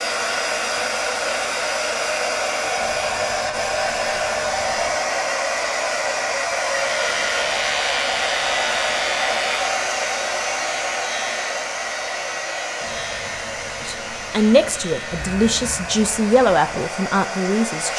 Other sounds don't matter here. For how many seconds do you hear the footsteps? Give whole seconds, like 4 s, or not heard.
not heard.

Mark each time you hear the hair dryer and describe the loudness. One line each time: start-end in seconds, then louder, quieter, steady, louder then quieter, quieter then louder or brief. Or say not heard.
0.0-17.9 quieter.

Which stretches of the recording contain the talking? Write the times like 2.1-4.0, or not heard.
13.8-17.9.